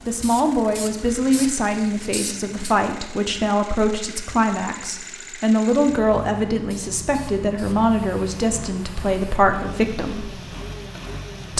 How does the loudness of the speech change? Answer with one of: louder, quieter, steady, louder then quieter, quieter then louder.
steady.